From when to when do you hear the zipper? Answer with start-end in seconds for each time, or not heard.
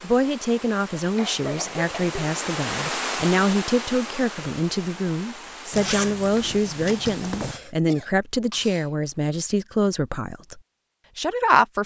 5.7-7.5.